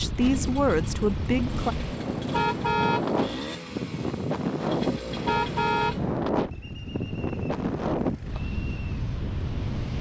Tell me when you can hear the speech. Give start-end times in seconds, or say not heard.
0.0-1.8.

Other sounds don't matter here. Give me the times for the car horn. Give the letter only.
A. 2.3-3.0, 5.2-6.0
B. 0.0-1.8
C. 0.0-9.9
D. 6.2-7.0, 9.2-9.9
A.